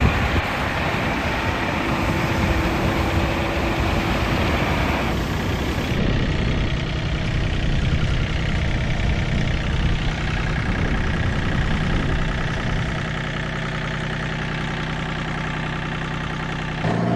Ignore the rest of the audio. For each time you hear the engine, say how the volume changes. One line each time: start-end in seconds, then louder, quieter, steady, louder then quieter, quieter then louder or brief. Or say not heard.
0.0-17.1 steady.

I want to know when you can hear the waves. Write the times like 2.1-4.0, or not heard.
0.0-13.0.